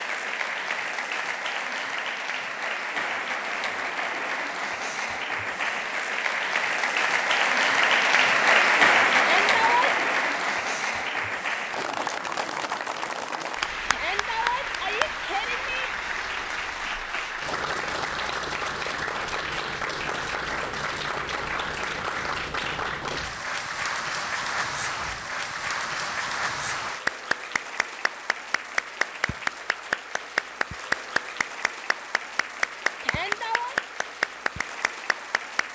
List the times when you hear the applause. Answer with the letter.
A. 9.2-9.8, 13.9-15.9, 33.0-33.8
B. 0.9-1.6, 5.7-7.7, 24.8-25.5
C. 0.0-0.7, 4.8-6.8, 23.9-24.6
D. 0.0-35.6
D.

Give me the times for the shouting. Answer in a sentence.
The shouting can be heard from 9.2 to 9.8 s, from 13.9 to 15.9 s and from 33.0 to 33.8 s.